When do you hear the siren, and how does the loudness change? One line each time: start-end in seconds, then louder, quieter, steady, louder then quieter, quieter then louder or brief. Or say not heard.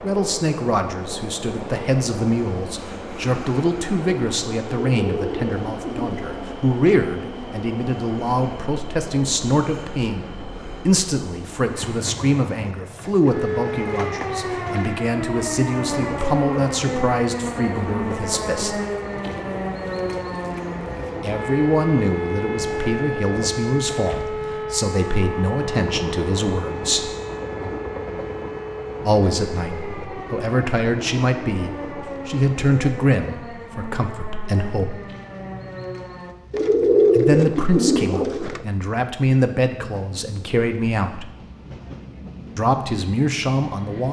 13.3-36.4 quieter.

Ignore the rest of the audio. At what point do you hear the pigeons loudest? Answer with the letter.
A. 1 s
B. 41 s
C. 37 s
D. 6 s
C.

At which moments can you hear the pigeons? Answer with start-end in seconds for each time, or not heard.
4.8-6.2, 36.5-38.6.